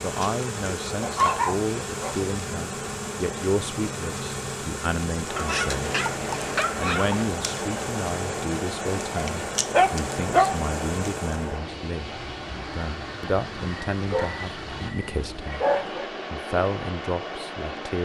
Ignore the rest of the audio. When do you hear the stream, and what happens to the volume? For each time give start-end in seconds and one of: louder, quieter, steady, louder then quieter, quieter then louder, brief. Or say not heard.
5.2-18.0 steady.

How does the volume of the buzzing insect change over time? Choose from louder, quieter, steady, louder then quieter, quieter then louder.
steady.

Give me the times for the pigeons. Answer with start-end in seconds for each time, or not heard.
not heard.